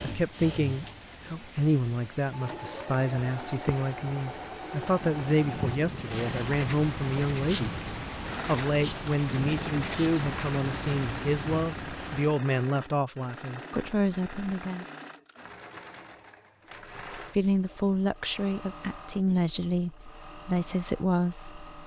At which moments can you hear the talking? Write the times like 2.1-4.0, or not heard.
0.0-14.8, 17.1-21.6.